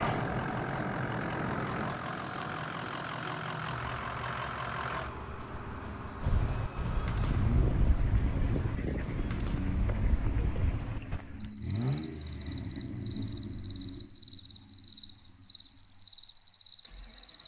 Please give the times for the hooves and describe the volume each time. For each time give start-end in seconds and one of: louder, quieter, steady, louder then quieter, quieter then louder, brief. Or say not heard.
6.2-11.2 steady.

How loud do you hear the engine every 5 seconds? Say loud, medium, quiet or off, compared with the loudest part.
loud, loud, loud, quiet.